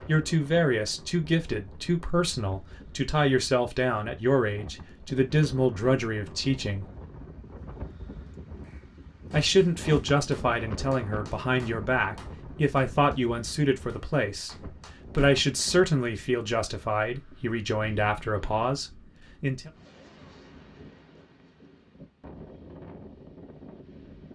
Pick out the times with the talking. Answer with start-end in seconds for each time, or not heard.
0.1-6.8, 9.3-19.7.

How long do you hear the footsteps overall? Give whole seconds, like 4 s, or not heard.
not heard.